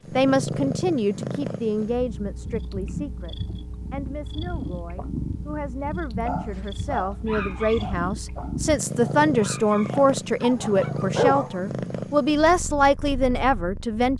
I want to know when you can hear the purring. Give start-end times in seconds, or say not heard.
0.0-14.1.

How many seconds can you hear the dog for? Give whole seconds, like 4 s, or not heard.
5 s.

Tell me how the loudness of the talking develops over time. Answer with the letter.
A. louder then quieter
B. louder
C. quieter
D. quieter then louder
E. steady
D.